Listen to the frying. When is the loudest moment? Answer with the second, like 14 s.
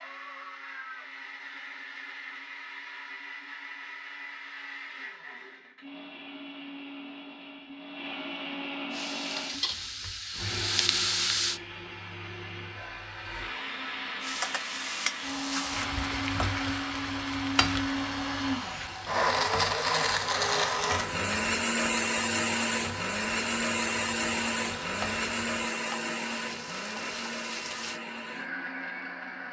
11 s.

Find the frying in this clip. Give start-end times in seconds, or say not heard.
8.9-11.6, 14.2-28.0.